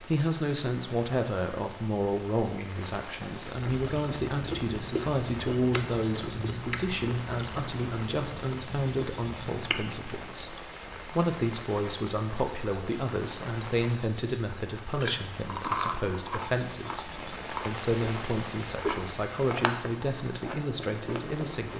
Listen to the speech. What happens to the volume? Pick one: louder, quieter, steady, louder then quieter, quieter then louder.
steady.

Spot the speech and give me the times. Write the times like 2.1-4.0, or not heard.
0.0-21.7.